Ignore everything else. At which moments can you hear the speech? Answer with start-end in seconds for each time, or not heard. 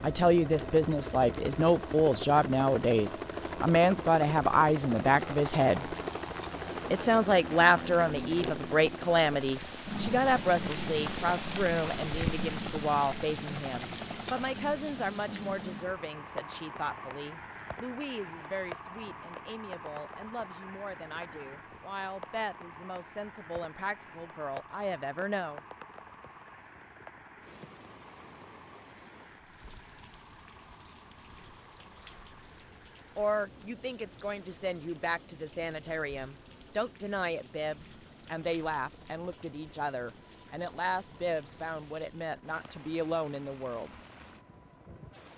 0.0-5.9, 6.9-25.6, 33.1-44.0.